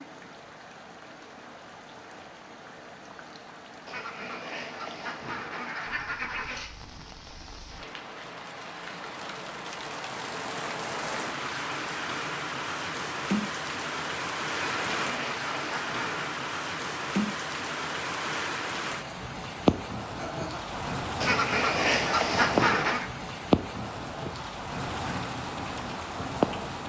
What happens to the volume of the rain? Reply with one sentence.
The volume of the rain goes up.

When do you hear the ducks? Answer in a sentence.
You can hear the ducks from 3.9 to 6.8 s, from 14.8 to 16.4 s and from 21.2 to 23.1 s.